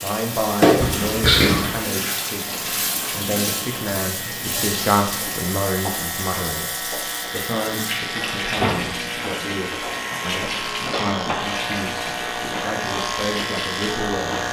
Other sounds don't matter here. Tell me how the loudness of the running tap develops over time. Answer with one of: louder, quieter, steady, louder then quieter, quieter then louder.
quieter.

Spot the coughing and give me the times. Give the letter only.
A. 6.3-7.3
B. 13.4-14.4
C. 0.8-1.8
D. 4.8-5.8
C.